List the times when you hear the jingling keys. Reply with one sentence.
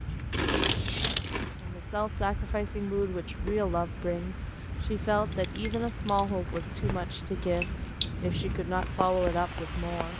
You can hear the jingling keys from 0.5 to 1.4 s and from 5.3 to 7.0 s.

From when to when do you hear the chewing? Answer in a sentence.
You can hear the chewing from 0.0 to 1.8 s and from 7.4 to 10.1 s.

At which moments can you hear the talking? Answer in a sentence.
You can hear the talking from 1.6 to 10.1 s.